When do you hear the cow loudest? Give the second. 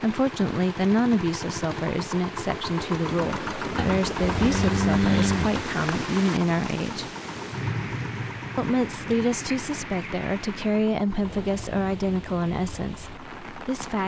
5 s.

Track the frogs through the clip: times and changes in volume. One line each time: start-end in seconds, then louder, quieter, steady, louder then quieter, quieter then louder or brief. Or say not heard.
not heard.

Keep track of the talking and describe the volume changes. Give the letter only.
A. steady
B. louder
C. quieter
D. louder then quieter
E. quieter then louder
A.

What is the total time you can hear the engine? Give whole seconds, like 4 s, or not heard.
14 s.